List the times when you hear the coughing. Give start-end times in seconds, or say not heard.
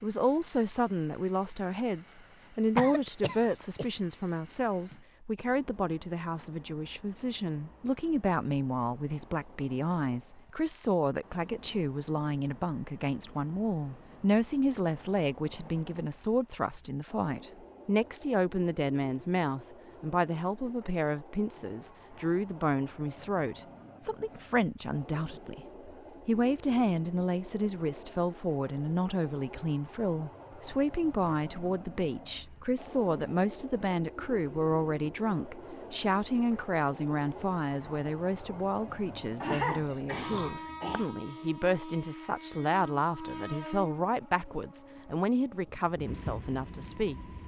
2.8-3.9, 39.4-41.0.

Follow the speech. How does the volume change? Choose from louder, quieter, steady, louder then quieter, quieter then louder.
steady.